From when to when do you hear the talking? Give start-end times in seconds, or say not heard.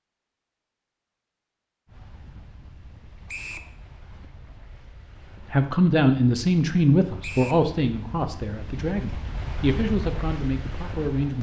5.5-11.3.